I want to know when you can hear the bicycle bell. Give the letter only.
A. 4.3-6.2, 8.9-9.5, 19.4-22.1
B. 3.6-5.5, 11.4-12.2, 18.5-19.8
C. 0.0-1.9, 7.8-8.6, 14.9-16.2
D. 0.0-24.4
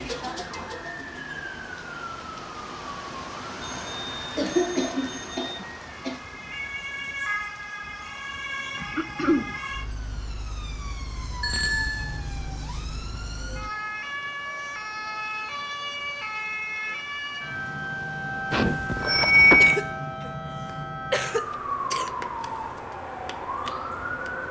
B.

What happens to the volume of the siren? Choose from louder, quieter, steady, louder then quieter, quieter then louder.
louder.